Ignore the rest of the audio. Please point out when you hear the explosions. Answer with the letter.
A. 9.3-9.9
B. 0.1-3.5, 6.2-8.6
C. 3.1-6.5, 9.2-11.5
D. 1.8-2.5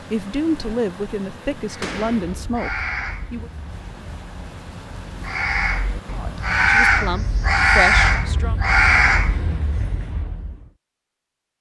D.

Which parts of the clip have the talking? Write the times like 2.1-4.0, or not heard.
0.1-3.5, 6.2-8.6.